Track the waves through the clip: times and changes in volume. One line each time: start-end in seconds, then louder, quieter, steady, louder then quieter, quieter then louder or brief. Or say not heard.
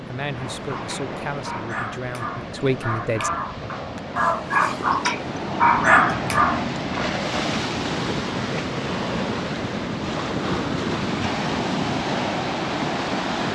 0.0-13.5 louder.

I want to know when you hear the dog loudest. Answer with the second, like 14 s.
6 s.